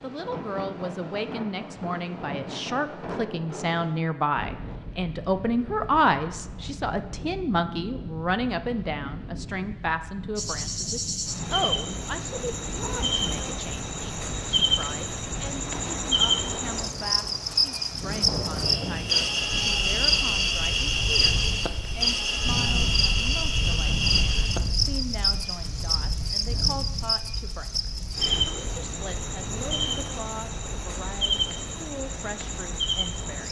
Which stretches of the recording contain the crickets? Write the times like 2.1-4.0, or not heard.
10.3-33.4.